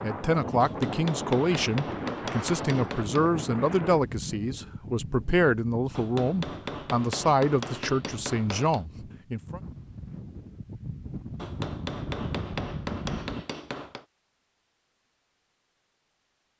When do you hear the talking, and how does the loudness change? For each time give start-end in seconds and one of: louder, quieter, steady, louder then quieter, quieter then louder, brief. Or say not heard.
0.0-9.6 steady.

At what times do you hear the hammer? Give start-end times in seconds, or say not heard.
0.6-3.3, 6.0-8.8, 11.3-14.1.